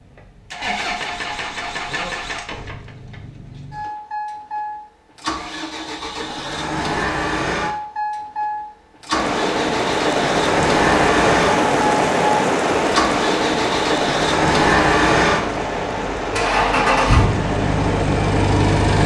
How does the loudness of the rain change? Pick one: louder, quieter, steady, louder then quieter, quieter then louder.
quieter.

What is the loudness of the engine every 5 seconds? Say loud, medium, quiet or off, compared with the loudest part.
medium, medium, loud, loud.